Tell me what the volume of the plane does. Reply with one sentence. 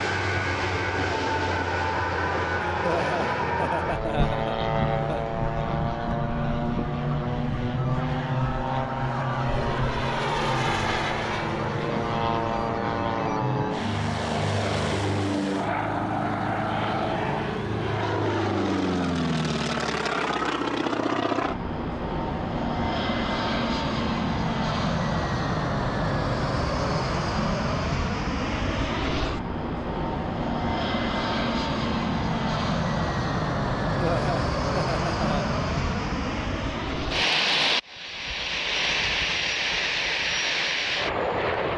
The volume of the plane stays about the same.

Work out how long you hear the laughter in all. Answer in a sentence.
The laughter can be heard for 4 seconds in total.